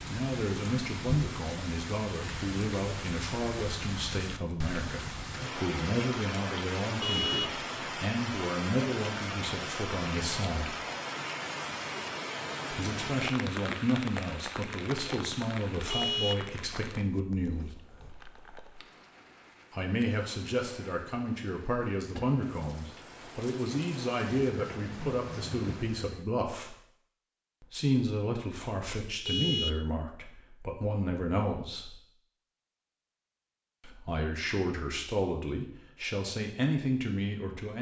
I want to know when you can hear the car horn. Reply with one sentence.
The car horn can be heard from 7.0 to 7.5 s, from 15.9 to 17.6 s and from 29.2 to 29.9 s.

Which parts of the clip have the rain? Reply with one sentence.
You can hear the rain from 0.0 to 26.2 s.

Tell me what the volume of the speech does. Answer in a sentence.
The volume of the speech stays about the same.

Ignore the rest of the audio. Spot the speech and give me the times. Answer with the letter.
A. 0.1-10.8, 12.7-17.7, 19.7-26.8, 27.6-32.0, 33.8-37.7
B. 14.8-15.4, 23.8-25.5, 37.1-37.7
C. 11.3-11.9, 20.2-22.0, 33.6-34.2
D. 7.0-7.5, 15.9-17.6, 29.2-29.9
A.